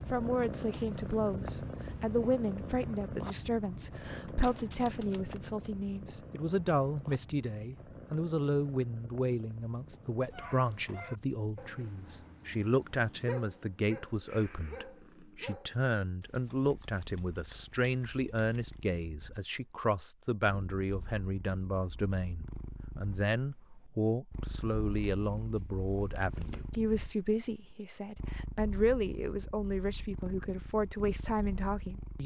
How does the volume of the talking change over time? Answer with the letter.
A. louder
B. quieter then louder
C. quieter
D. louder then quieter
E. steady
E.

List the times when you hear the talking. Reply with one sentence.
The talking can be heard from 0.1 to 32.2 s.